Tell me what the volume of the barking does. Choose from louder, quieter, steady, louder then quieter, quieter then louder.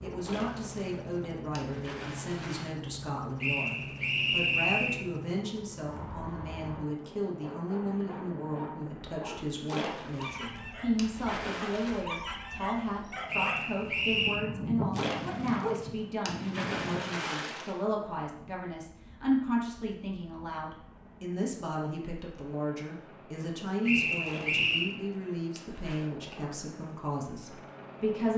louder.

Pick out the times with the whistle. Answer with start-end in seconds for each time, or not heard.
3.4-5.0, 13.2-14.4, 23.9-24.9.